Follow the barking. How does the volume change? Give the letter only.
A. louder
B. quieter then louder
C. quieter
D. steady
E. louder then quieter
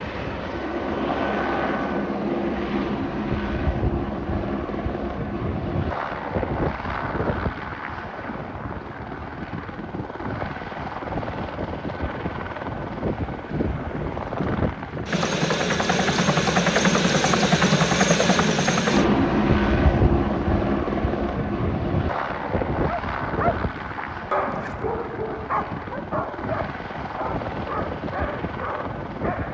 C.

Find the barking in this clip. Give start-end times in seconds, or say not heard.
22.9-29.4.